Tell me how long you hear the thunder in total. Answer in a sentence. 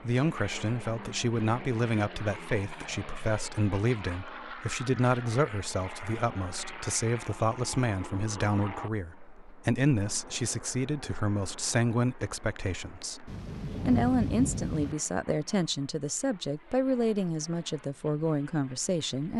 You can hear the thunder for 2 seconds altogether.